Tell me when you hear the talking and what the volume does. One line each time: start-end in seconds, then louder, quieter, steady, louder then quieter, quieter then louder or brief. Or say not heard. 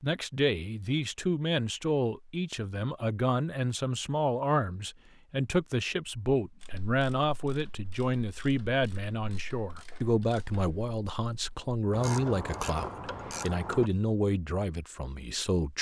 0.0-15.7 steady.